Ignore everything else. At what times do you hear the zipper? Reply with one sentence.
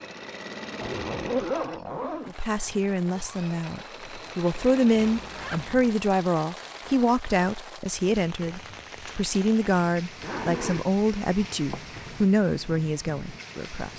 The zipper can be heard from 0.8 to 2.3 s, from 5.0 to 6.0 s and from 10.2 to 12.2 s.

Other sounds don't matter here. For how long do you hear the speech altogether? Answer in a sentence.
You can hear the speech for 12 seconds altogether.